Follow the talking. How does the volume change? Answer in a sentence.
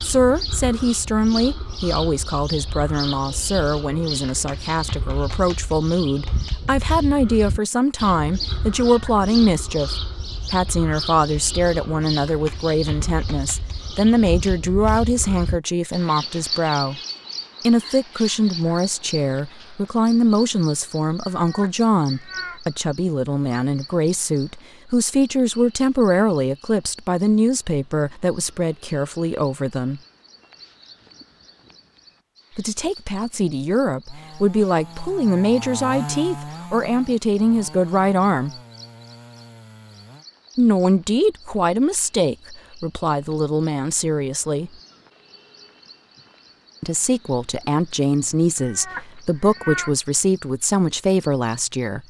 The loudness of the talking stays about the same.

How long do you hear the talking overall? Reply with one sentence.
You can hear the talking for 45 seconds altogether.